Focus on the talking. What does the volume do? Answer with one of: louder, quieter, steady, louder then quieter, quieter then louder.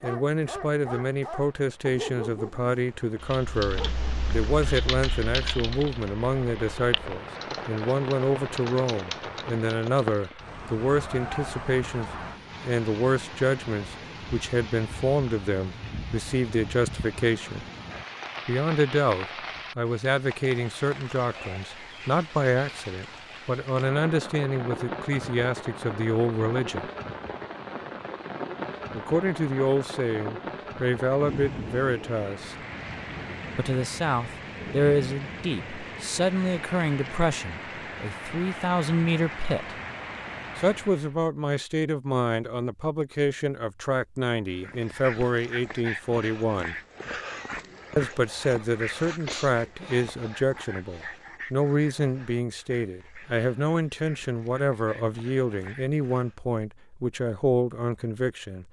steady.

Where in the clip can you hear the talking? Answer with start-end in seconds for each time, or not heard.
0.0-17.6, 18.4-26.9, 28.9-32.5, 33.5-39.8, 40.5-46.8, 48.0-58.6.